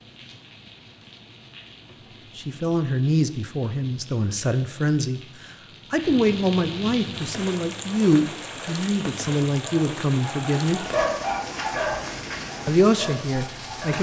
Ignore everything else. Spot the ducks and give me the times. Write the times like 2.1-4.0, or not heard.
not heard.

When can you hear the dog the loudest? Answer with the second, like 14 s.
11 s.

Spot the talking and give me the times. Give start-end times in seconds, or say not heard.
2.4-5.2, 5.9-10.8, 12.7-13.9.